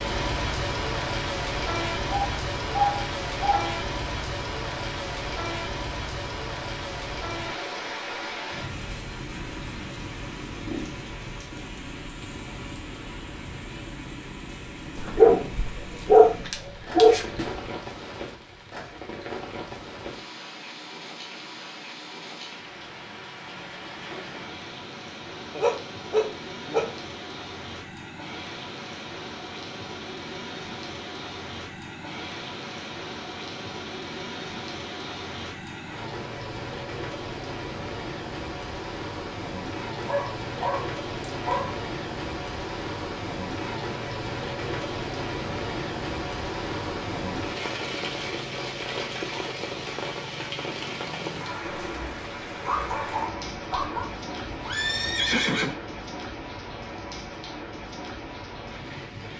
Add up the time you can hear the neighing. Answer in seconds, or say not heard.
2 s.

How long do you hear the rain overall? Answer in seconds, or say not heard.
59 s.